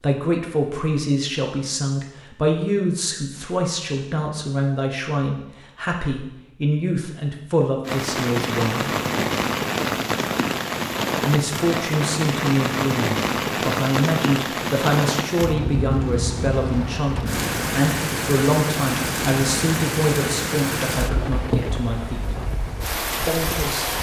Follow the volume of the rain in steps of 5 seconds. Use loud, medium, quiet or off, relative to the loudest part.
off, loud, loud, loud, loud.